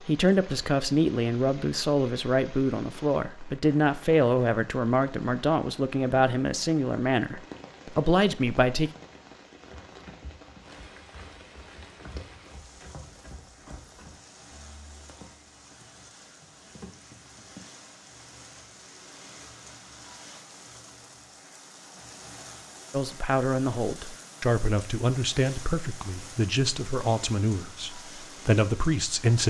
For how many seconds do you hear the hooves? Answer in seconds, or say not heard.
8 s.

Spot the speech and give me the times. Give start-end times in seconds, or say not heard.
0.0-8.9, 22.9-29.4.